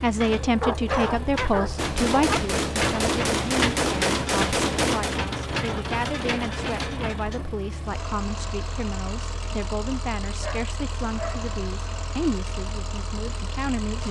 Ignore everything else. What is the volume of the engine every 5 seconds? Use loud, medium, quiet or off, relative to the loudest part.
loud, loud, medium.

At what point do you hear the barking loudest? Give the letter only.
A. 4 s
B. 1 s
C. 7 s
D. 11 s
B.